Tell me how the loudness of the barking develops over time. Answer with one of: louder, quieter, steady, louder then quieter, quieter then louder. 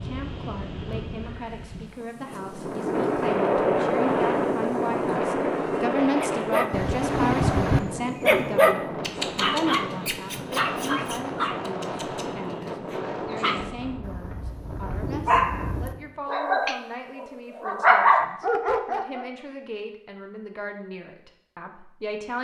quieter then louder.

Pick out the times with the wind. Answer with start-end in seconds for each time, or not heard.
0.0-16.1.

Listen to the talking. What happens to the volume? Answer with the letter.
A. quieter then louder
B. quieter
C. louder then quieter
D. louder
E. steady
C.